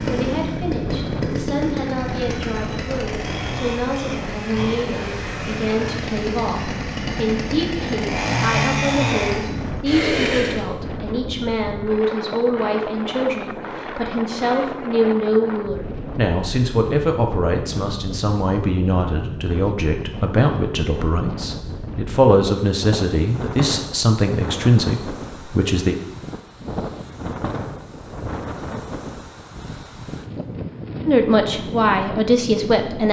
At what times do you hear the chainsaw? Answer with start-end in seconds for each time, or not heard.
0.0-10.7.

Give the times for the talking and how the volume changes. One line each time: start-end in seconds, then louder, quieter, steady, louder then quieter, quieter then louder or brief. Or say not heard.
0.1-25.9 louder
31.1-33.0 brief.